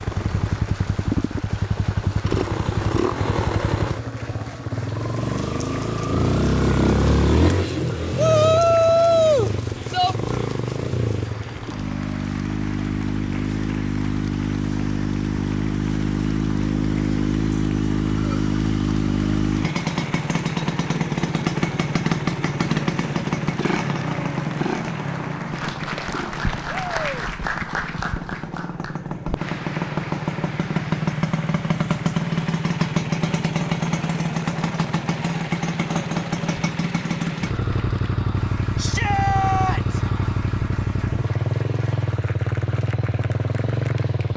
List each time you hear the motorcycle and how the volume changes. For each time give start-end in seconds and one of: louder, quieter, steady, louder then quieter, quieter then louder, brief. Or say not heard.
0.0-44.3 steady.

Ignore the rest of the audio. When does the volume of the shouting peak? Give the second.
9 s.